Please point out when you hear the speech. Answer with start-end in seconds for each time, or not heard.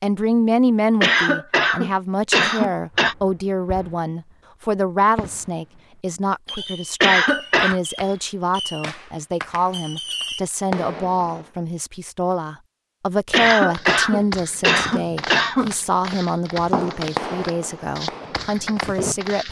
0.0-19.4.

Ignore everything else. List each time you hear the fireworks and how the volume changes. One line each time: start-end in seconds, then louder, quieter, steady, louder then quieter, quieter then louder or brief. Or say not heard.
2.9-4.3 brief
5.2-5.8 brief
6.5-11.5 louder
16.6-19.1 brief.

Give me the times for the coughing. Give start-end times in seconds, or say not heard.
1.0-3.1, 7.0-7.8, 13.3-15.7.